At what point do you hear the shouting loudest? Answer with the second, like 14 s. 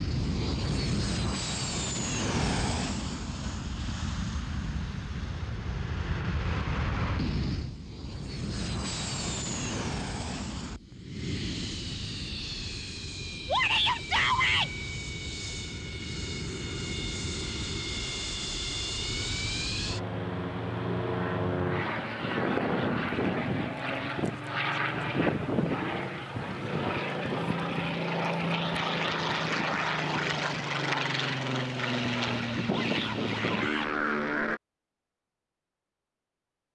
14 s.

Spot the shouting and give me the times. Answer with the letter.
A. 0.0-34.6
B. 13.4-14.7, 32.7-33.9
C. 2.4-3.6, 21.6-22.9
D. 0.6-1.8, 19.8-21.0
B.